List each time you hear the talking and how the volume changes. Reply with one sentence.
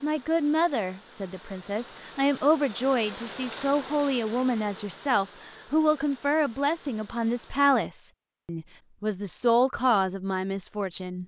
The talking can be heard from 0.0 to 11.2 s, at a steady volume.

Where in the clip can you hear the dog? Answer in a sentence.
The dog can't be heard in this clip.